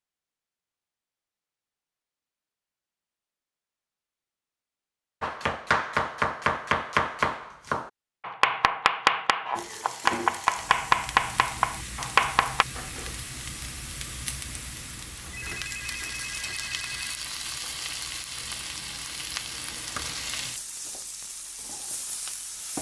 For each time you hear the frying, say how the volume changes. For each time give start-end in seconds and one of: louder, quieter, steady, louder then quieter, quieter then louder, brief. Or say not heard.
9.6-22.7 steady.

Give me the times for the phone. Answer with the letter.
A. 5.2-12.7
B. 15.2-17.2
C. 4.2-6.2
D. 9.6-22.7
B.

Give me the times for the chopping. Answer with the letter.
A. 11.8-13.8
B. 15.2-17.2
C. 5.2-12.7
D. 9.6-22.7
C.